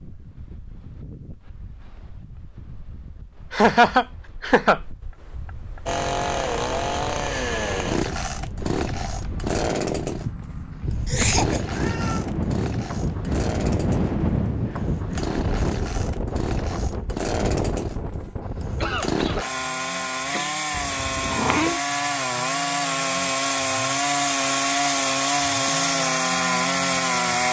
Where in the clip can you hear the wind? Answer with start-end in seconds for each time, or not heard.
0.0-19.4.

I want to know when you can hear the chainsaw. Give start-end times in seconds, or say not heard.
5.8-27.4.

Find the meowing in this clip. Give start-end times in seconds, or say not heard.
11.2-12.2, 20.7-21.8.